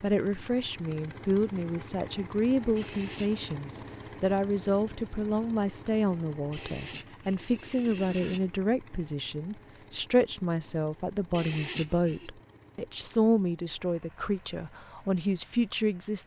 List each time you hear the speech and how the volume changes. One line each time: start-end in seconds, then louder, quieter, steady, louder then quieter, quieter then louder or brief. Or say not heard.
0.0-16.2 steady.